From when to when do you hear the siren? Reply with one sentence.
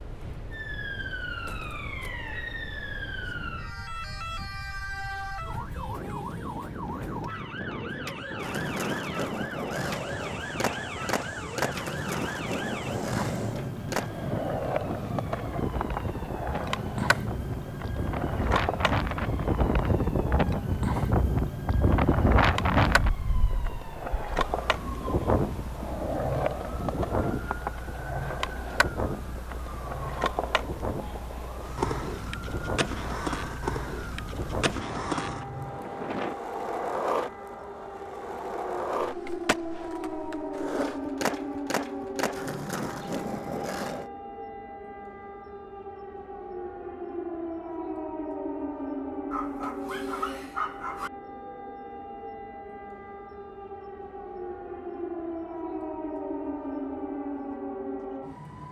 You can hear the siren from 0.0 to 58.6 s.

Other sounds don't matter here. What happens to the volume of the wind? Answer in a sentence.
The loudness of the wind goes up, then down.